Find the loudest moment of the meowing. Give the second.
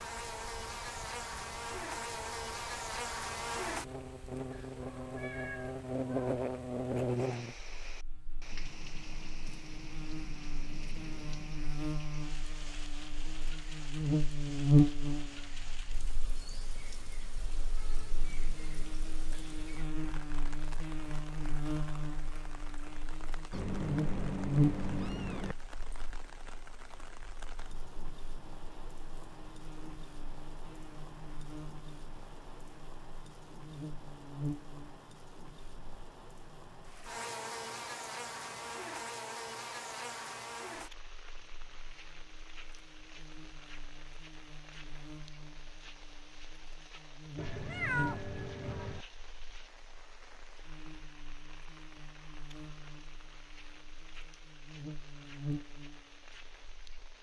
48 s.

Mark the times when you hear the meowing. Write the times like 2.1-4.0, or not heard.
4.5-6.3, 23.5-25.6, 47.4-49.0.